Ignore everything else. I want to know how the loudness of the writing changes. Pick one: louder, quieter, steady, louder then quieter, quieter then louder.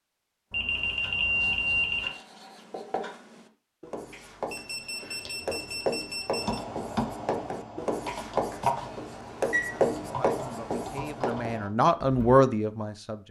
louder.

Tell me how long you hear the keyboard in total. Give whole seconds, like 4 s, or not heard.
6 s.